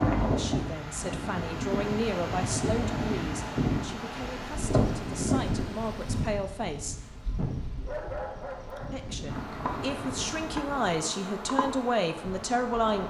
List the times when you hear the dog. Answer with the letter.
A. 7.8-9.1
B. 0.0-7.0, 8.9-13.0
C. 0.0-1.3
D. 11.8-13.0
A.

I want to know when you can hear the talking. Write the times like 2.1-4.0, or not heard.
0.0-7.0, 8.9-13.0.